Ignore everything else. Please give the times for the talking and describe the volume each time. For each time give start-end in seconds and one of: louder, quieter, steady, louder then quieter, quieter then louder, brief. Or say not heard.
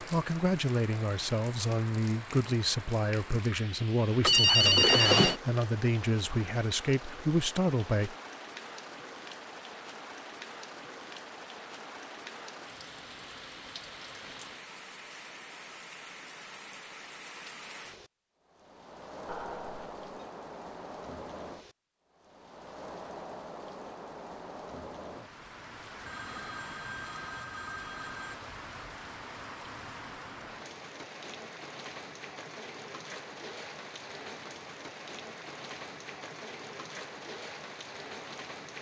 0.0-8.2 steady.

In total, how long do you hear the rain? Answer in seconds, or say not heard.
39 s.